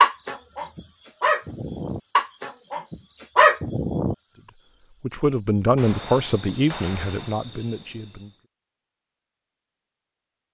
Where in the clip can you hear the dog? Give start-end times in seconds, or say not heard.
0.0-4.2.